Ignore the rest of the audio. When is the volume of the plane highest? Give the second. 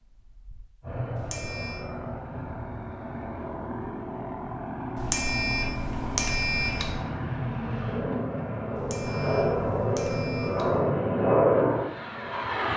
11 s.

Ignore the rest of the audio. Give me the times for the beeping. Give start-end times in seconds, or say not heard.
1.1-1.9, 5.0-7.0, 8.8-10.8.